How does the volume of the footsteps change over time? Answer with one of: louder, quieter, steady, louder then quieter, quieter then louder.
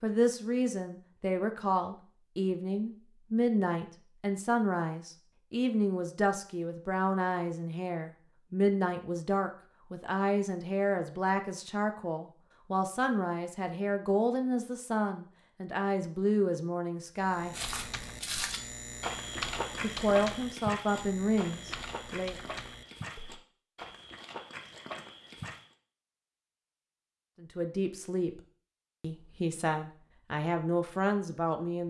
quieter.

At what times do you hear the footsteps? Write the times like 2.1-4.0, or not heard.
17.5-25.8.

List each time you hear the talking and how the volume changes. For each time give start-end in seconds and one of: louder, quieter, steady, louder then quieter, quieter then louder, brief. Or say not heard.
0.0-17.6 steady
19.8-22.4 brief
27.4-28.4 brief
29.0-31.8 brief.